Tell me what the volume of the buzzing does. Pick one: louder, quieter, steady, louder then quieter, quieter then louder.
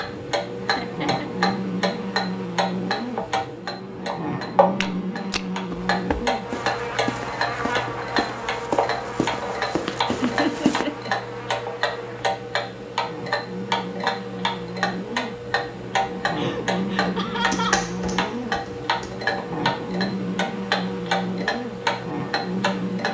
quieter then louder.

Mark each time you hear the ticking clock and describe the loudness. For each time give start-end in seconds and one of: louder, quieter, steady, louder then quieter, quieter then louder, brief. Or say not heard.
0.0-23.0 steady.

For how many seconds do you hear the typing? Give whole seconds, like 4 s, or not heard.
2 s.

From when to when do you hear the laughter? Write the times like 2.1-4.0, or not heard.
0.8-1.2, 10.1-11.1, 16.4-17.9.